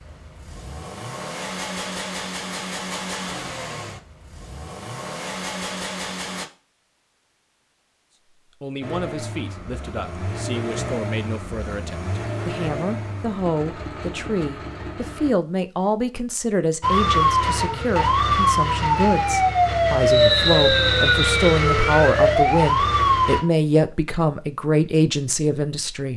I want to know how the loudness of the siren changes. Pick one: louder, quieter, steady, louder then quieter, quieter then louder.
steady.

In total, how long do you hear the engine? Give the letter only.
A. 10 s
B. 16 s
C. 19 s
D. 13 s
D.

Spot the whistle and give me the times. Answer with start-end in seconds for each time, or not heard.
20.1-21.6.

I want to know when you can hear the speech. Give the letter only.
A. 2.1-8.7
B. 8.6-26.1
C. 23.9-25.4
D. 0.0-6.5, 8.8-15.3
B.